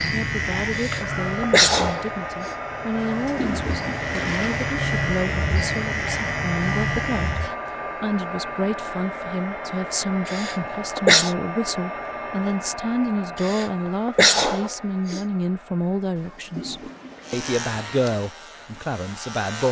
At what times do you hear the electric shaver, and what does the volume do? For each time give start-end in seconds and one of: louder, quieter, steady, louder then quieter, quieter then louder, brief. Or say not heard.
0.0-7.5 quieter then louder
17.2-19.6 brief.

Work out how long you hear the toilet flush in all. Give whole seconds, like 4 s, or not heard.
4 s.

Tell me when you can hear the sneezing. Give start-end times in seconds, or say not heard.
0.8-2.5, 10.2-11.3, 13.4-15.2.